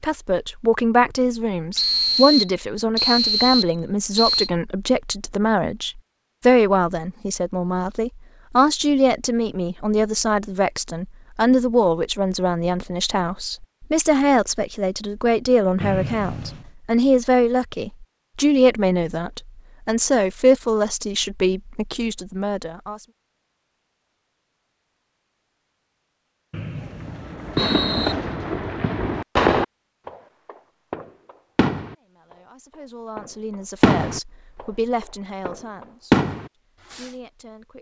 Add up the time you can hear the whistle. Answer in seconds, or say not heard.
5 s.